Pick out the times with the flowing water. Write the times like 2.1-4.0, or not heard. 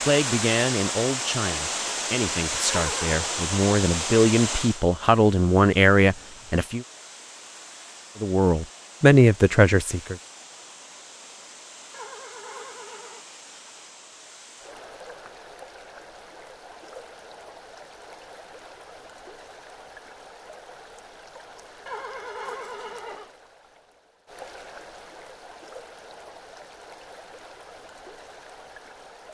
0.0-29.2.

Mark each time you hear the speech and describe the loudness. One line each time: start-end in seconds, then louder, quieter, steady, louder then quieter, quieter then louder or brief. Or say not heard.
0.1-6.8 louder
8.2-10.2 brief.